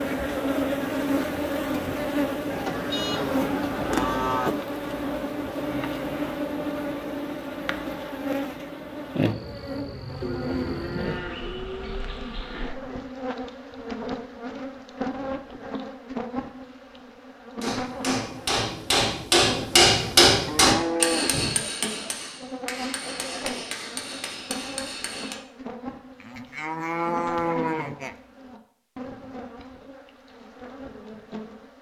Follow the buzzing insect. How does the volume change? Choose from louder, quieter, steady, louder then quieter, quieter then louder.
quieter.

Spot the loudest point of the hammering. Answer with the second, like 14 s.
20 s.